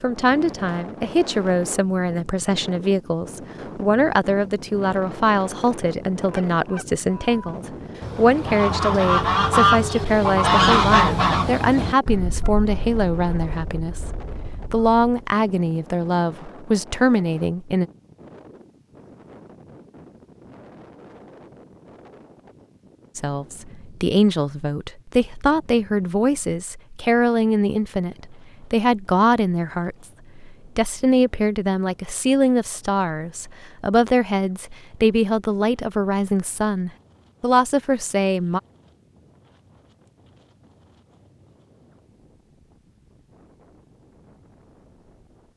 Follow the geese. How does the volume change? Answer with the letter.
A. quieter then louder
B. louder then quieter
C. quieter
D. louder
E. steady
B.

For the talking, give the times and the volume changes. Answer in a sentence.
The talking can be heard from 0.0 to 17.9 s, at a steady volume; and from 23.1 to 38.6 s, at a steady volume.